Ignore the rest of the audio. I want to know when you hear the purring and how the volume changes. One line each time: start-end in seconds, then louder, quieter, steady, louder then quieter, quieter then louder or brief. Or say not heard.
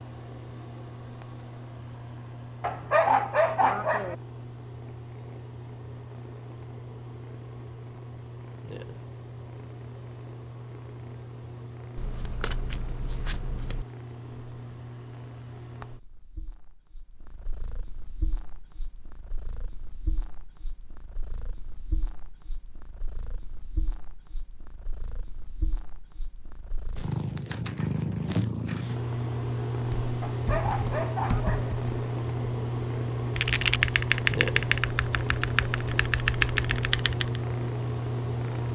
0.0-38.7 quieter then louder.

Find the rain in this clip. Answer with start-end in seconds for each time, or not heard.
not heard.